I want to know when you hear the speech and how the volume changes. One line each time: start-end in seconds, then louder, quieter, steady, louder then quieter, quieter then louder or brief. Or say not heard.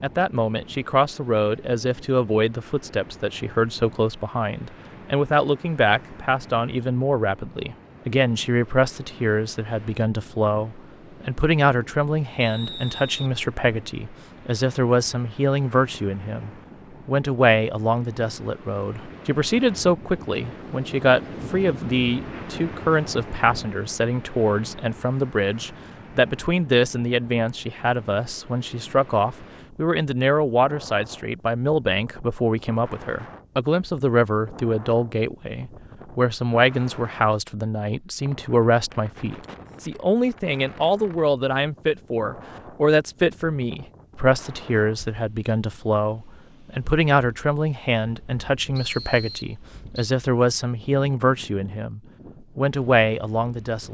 0.0-53.8 steady.